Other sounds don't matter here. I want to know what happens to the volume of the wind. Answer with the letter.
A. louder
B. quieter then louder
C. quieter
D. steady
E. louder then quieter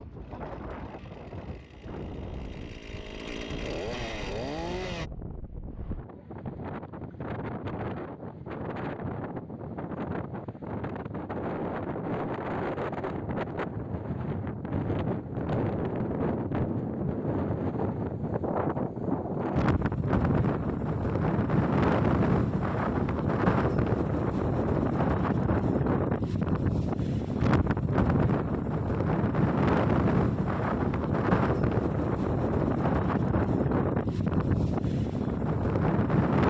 A.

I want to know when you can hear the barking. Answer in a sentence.
The barking can't be heard in this clip.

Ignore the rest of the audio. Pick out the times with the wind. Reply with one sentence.
You can hear the wind from 0.0 to 36.4 s.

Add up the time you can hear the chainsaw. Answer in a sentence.
The chainsaw can be heard for 5 seconds in total.